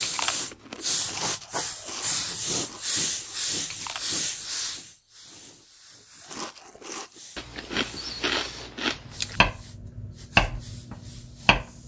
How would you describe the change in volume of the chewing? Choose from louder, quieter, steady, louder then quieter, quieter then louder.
quieter then louder.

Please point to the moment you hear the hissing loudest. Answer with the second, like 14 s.
3 s.